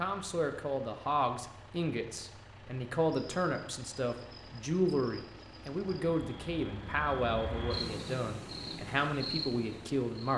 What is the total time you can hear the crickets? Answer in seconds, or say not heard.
7 s.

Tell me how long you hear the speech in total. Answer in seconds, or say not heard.
10 s.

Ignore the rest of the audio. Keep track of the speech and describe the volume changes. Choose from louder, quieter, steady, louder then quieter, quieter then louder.
steady.